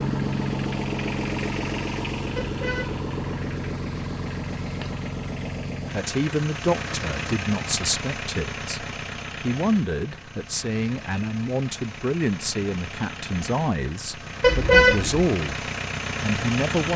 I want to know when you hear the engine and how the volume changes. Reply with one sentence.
The engine can be heard from 0.0 to 16.9 s, getting quieter then louder.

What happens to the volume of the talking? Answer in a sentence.
The volume of the talking stays about the same.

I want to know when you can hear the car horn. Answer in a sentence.
You can hear the car horn from 2.4 to 3.0 s and from 14.4 to 15.2 s.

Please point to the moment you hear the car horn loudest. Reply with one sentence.
The volume of the car horn peaks at 15 seconds.